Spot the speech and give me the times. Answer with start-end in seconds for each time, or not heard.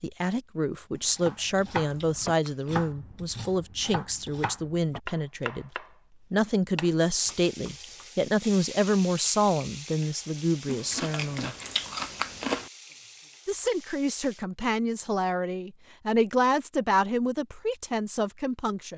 0.0-5.7, 6.3-11.6, 13.4-18.9.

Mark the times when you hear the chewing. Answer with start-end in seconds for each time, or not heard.
0.9-3.0, 10.7-12.7.